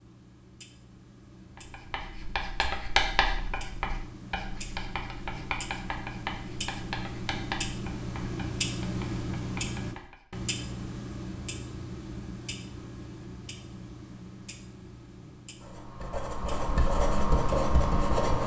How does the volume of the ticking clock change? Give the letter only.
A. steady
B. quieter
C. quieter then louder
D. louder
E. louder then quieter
E.